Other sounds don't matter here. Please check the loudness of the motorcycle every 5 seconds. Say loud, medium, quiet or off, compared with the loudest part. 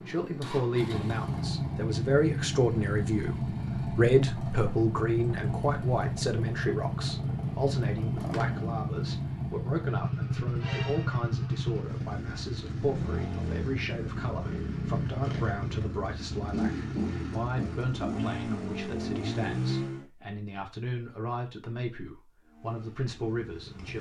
loud, loud, loud, loud, quiet.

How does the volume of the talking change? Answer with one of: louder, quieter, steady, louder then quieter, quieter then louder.
quieter.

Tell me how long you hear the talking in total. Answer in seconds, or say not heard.
24 s.